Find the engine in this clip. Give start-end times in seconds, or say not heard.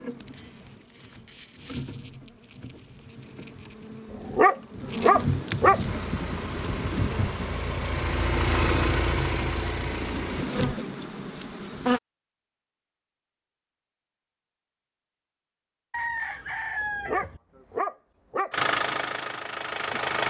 5.8-10.5, 18.5-20.2.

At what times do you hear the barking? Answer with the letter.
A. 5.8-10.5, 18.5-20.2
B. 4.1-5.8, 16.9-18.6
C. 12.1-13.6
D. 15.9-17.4
B.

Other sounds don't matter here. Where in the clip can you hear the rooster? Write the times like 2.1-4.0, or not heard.
15.9-17.4.